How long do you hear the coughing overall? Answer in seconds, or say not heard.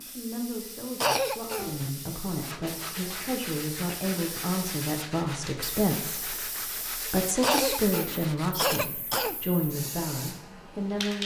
3 s.